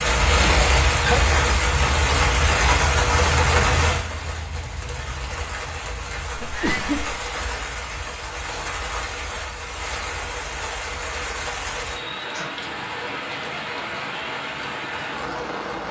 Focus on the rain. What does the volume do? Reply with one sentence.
The loudness of the rain goes down.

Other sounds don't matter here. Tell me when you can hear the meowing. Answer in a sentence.
You can hear the meowing from 6.5 to 7.0 s.